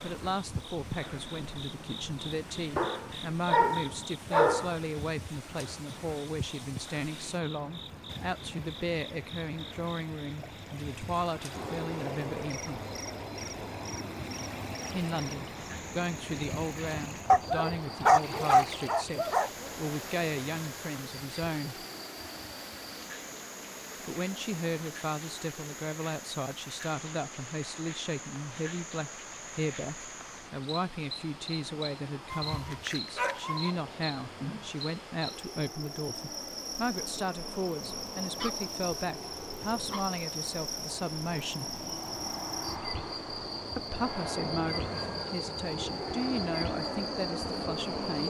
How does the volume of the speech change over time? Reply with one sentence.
The volume of the speech stays about the same.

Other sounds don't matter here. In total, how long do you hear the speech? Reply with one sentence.
The speech can be heard for 42 seconds in total.